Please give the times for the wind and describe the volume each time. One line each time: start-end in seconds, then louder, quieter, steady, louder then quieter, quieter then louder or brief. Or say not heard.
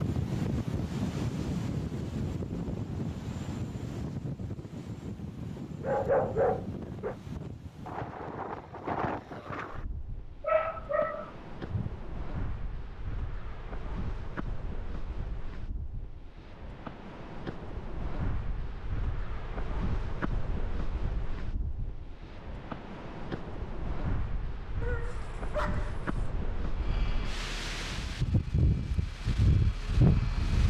0.0-30.6 quieter then louder.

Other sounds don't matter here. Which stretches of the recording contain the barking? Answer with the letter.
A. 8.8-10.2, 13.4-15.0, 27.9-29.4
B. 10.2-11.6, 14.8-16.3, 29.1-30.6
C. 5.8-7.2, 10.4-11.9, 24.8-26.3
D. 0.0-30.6
C.